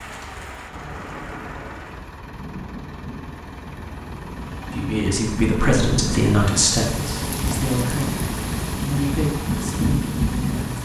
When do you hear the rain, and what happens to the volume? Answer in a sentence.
You can hear the rain from 0.0 to 10.8 s, getting louder.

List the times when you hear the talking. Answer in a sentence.
The talking can be heard from 4.7 to 10.8 s.